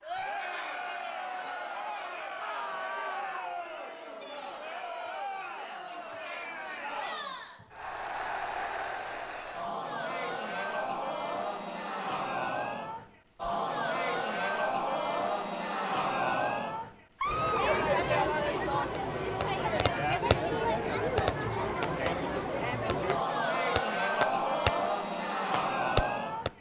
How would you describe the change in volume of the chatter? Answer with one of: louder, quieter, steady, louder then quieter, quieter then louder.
louder.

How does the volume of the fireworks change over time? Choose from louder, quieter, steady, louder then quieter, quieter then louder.
quieter then louder.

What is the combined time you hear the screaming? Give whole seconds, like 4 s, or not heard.
2 s.